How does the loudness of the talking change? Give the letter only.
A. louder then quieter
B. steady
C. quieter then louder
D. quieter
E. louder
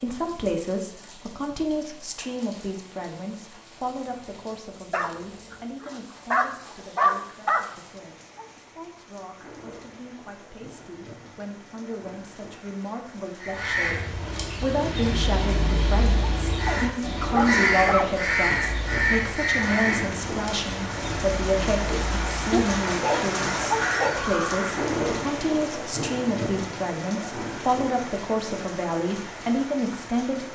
C.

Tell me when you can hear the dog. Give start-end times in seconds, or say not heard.
4.9-7.7, 16.6-18.1, 22.5-24.4.